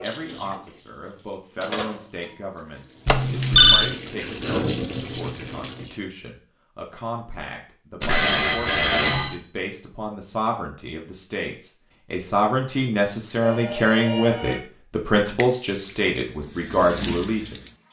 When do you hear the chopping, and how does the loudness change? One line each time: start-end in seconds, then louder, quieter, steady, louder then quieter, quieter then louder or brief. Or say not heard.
not heard.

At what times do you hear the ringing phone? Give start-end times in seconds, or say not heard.
3.0-3.9, 8.0-9.4, 13.4-14.6.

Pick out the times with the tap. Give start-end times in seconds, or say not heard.
0.0-6.0, 15.2-17.8.